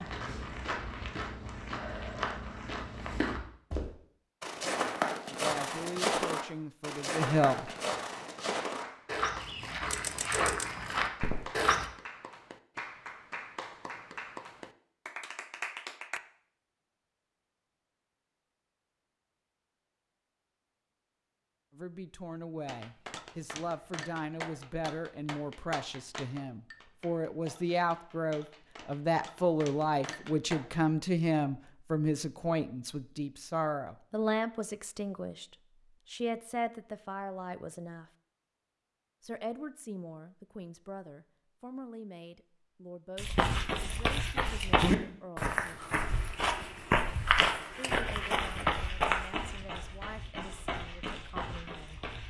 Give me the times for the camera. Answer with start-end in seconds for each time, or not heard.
9.9-10.7.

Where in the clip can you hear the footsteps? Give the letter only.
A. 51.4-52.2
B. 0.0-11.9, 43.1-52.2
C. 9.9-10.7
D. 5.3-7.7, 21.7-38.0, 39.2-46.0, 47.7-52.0
B.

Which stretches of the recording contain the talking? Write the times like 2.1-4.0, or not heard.
5.3-7.7, 21.7-38.0, 39.2-46.0, 47.7-52.0.